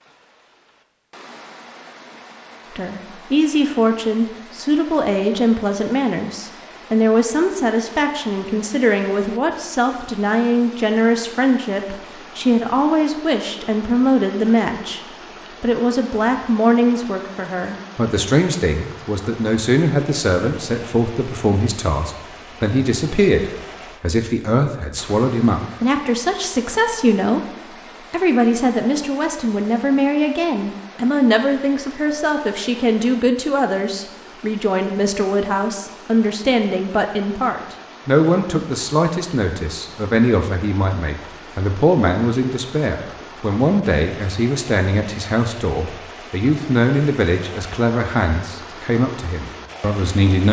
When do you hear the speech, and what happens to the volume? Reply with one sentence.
The speech can be heard from 2.8 to 27.4 s, at a steady volume; and from 28.1 to 50.4 s, at a steady volume.